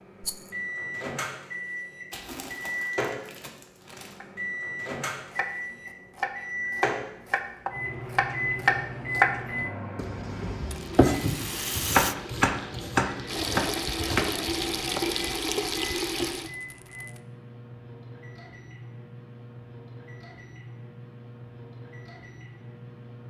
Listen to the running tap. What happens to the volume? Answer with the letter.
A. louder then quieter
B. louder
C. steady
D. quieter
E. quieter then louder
B.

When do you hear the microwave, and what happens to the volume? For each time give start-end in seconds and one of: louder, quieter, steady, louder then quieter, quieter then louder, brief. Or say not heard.
0.0-23.2 quieter.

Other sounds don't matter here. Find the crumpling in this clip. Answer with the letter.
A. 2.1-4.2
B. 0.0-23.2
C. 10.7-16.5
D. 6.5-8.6
A.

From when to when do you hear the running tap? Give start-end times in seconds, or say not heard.
10.7-16.5.